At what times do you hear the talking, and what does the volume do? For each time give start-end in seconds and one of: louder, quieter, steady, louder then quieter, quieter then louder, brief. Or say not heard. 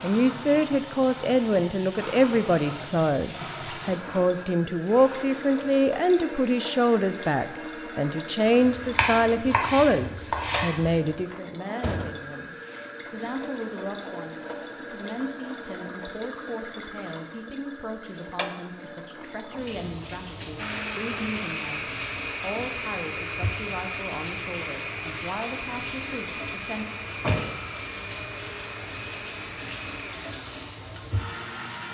0.0-26.9 quieter.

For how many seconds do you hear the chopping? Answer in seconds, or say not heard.
3 s.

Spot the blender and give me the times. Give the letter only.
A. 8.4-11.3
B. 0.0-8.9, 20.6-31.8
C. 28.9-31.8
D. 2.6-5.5
B.